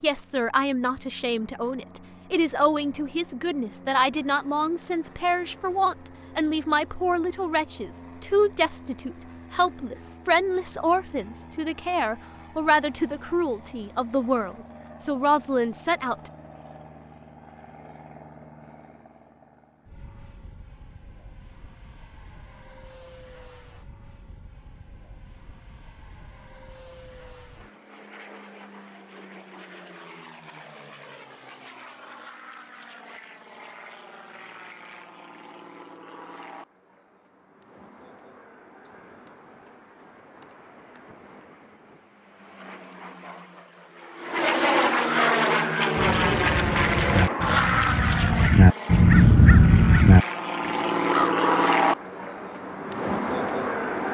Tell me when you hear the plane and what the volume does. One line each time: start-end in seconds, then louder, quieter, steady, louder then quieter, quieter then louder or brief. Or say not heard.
0.0-54.0 louder.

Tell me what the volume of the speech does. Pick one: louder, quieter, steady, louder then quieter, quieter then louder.
steady.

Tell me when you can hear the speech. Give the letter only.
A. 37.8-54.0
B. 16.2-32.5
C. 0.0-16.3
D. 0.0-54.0
C.